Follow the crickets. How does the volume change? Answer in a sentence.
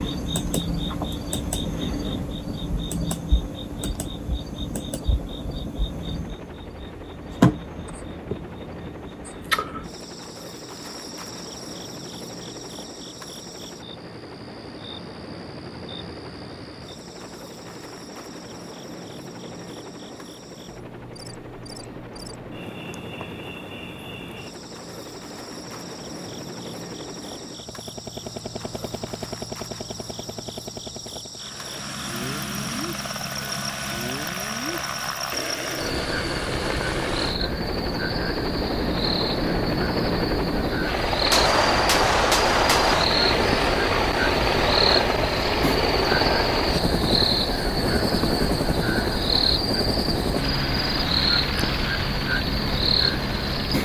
The volume of the crickets goes down, then up.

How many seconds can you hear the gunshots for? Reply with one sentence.
You can hear the gunshots for 2 seconds altogether.